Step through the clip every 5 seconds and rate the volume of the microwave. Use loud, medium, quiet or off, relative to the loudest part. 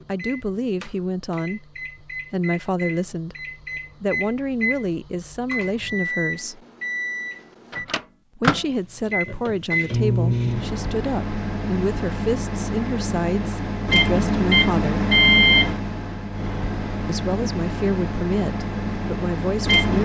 quiet, medium, loud, loud.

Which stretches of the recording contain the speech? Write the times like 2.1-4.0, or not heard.
0.1-3.4, 4.0-6.6, 8.3-15.1, 17.1-19.9.